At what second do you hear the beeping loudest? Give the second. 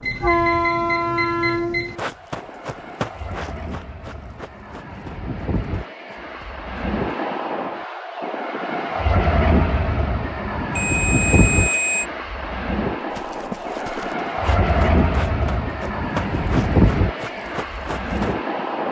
12 s.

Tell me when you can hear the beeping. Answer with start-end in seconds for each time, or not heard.
0.0-1.9, 10.8-12.1.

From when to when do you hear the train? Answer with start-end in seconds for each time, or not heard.
0.0-18.8.